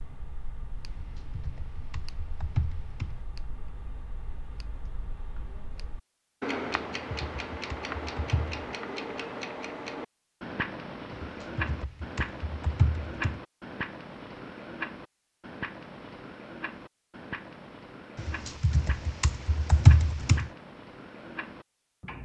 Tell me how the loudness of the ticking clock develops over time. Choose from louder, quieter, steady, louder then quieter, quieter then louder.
louder then quieter.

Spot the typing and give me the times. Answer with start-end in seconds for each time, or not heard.
0.9-3.2, 6.9-8.7, 11.1-13.4, 18.1-20.5.